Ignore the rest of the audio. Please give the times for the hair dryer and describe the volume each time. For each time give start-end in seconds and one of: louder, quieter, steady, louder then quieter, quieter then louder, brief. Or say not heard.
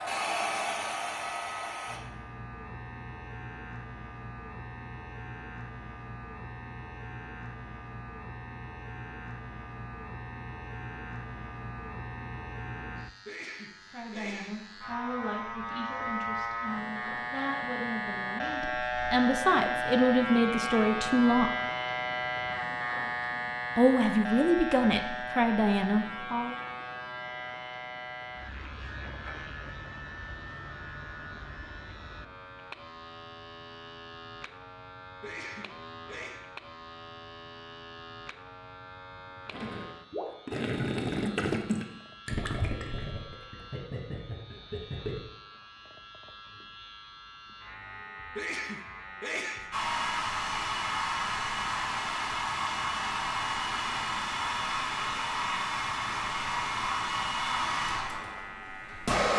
0.0-2.0 brief
49.7-59.3 steady.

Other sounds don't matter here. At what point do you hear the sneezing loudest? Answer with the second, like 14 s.
49 s.